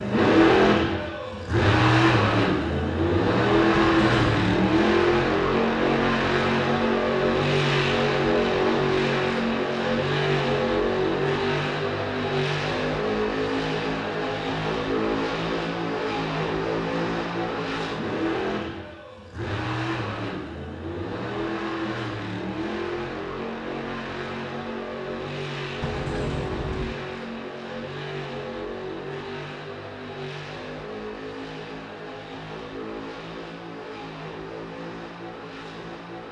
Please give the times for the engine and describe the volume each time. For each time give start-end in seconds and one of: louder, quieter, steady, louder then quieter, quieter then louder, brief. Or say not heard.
0.0-36.2 quieter.